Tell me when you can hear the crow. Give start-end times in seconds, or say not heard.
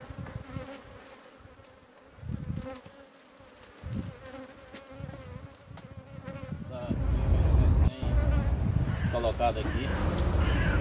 6.8-10.7.